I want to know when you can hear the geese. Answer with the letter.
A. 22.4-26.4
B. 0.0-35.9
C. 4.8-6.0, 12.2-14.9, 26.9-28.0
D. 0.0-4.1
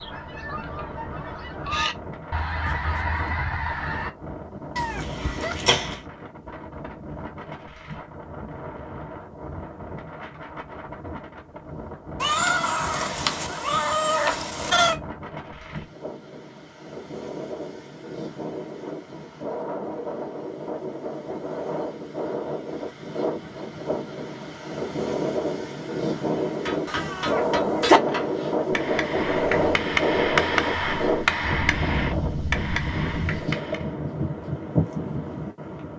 D.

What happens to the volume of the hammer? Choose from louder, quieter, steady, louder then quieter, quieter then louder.
louder then quieter.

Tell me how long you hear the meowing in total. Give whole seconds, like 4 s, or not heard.
5 s.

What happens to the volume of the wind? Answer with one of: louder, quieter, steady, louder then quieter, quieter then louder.
louder.